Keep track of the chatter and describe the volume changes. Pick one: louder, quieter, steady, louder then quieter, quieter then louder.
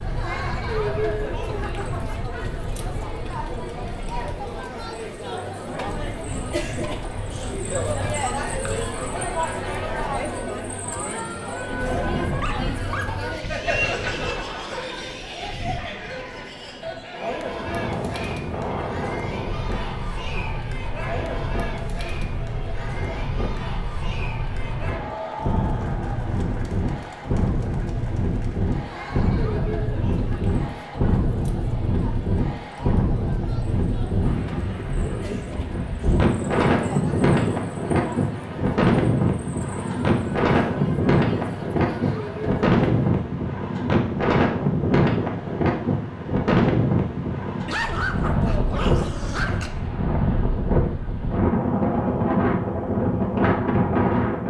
quieter.